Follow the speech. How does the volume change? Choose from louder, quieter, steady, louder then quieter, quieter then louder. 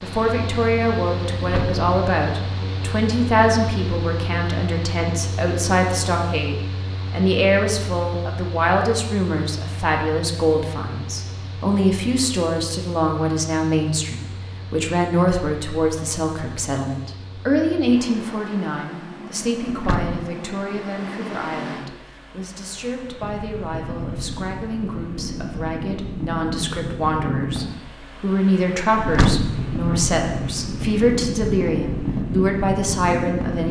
quieter then louder.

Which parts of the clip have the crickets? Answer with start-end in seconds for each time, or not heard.
not heard.